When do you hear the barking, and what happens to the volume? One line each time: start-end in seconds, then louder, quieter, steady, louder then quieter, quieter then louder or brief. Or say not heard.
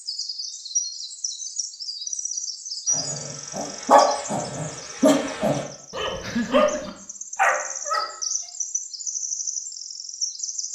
2.9-8.1 quieter then louder.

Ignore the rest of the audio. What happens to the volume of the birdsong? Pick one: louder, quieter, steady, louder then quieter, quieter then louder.
quieter then louder.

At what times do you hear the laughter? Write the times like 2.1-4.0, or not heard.
6.2-6.8.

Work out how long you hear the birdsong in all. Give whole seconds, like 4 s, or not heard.
11 s.